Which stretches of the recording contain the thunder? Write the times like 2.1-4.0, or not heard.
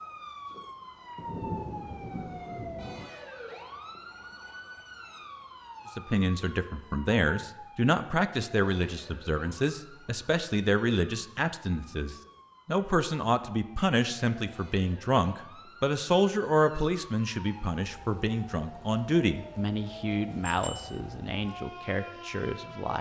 1.1-3.1.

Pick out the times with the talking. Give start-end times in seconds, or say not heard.
6.0-22.9.